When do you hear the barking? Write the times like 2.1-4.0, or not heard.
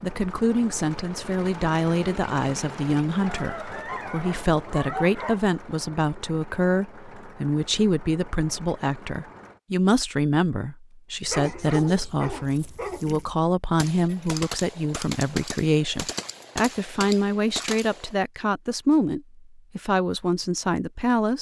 3.1-5.4, 11.3-13.3.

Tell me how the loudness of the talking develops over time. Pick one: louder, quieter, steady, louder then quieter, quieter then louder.
steady.